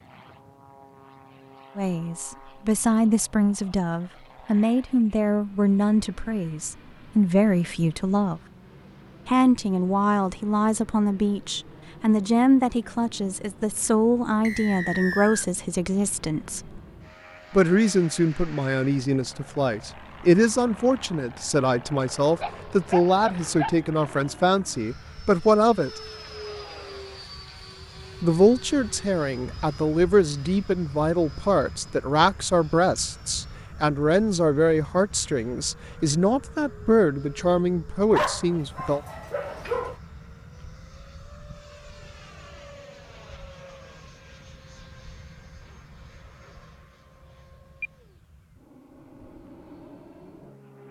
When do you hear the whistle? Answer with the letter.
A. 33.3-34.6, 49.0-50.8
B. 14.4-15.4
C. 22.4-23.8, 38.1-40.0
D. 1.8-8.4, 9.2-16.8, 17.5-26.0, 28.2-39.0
B.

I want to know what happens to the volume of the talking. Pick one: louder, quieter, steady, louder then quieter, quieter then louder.
steady.